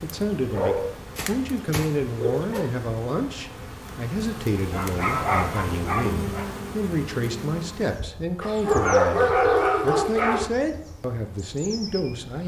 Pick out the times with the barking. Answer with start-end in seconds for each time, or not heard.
0.5-2.6, 4.7-6.5, 8.4-10.5.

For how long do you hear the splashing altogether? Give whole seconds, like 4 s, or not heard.
not heard.